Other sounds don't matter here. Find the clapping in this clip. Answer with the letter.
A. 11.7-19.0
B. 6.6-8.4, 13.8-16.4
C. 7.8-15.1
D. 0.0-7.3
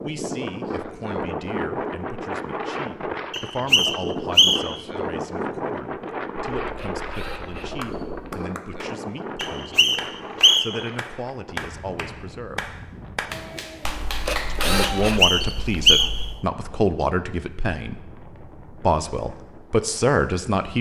C.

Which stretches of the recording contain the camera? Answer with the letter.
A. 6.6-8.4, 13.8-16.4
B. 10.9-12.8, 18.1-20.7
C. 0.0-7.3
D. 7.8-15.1
A.